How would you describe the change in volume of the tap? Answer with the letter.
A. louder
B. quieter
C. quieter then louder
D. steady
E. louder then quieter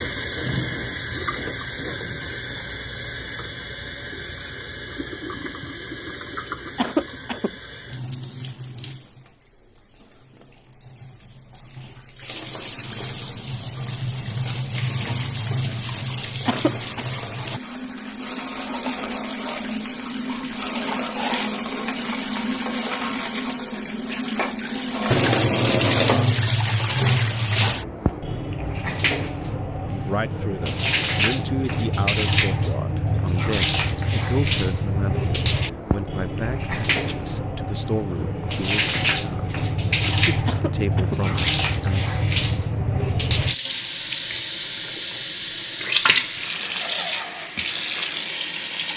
A.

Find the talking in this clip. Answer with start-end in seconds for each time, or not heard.
29.8-42.2.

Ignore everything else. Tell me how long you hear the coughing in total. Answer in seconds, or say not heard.
2 s.